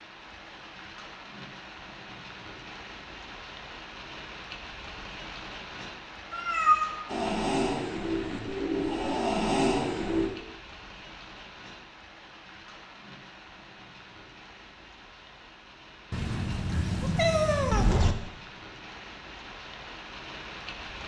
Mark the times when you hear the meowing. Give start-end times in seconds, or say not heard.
6.3-7.0, 16.1-18.1.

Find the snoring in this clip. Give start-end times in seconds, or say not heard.
7.0-10.3.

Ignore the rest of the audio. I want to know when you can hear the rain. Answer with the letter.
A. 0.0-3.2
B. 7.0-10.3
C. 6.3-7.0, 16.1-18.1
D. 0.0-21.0
D.